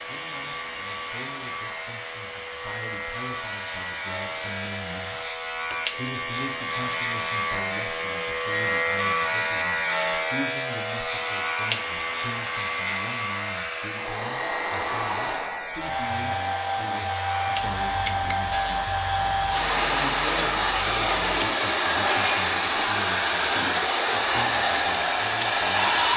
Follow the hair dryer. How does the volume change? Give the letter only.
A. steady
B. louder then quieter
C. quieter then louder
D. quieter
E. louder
E.